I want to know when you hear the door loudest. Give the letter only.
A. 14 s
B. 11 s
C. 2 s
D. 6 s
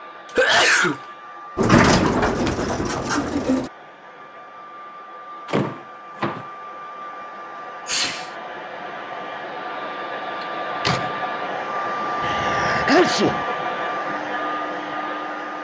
C.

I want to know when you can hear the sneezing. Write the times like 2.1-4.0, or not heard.
0.3-1.0, 7.8-8.2, 12.2-13.4.